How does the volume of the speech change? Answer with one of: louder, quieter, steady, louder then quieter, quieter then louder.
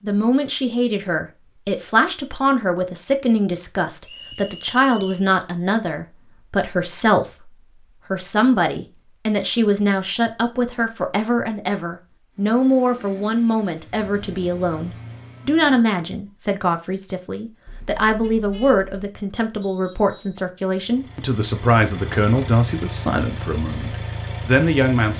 steady.